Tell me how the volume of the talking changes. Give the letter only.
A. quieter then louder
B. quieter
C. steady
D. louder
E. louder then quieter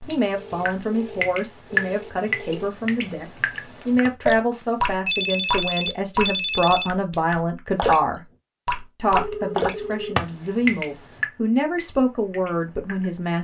C.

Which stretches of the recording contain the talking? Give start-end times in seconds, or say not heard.
0.1-8.2, 8.9-13.3.